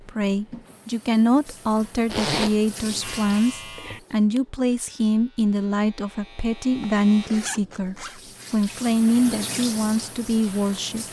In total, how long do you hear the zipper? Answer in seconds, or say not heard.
2 s.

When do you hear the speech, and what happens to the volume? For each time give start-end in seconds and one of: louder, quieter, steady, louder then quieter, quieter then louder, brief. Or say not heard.
0.1-11.0 steady.